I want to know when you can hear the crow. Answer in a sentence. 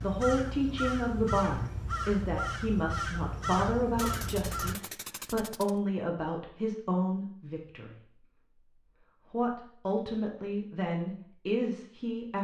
The crow can be heard from 0.0 to 4.8 s.